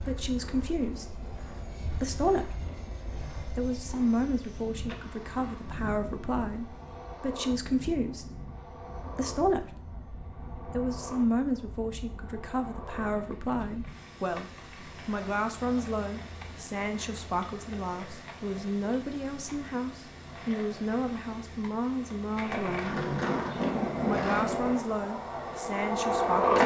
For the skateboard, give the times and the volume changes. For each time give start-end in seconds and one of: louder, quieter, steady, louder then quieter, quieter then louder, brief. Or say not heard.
0.0-26.6 louder.